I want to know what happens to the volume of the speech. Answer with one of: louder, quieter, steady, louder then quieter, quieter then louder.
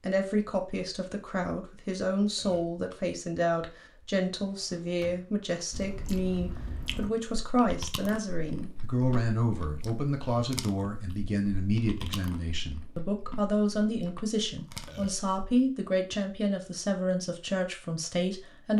steady.